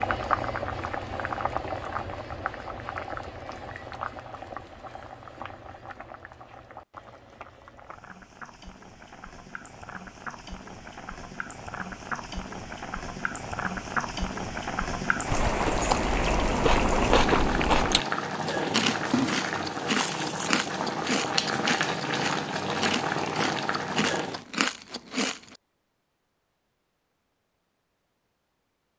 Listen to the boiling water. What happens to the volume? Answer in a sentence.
The loudness of the boiling water goes down, then up.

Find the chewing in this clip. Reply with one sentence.
The chewing can be heard from 15.3 to 25.6 s.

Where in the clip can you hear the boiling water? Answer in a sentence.
You can hear the boiling water from 0.0 to 24.4 s.